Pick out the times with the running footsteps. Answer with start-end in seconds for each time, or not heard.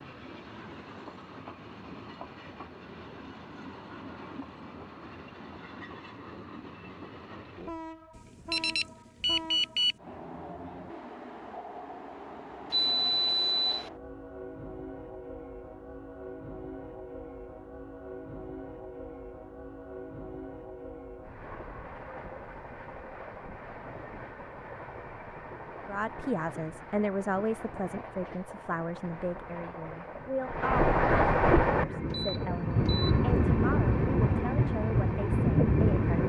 not heard.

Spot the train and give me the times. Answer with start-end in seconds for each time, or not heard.
0.0-36.2.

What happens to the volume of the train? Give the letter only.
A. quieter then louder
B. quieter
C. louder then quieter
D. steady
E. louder
E.